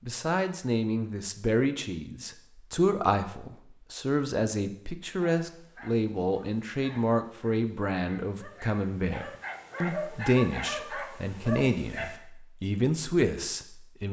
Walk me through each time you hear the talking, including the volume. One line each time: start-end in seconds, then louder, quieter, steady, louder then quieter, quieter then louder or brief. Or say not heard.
0.1-14.0 steady.